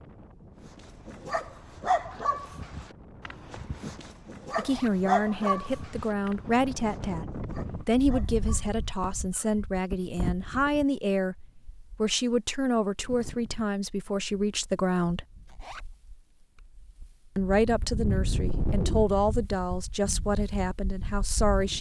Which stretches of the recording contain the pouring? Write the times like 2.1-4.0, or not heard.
not heard.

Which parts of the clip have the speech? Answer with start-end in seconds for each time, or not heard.
4.5-15.2, 17.4-21.7.